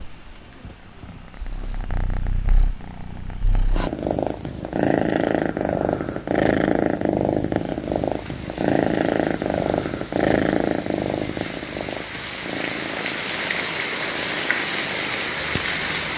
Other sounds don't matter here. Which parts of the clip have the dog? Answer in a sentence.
You can't hear the dog here.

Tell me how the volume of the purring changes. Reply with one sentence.
The loudness of the purring goes up, then down.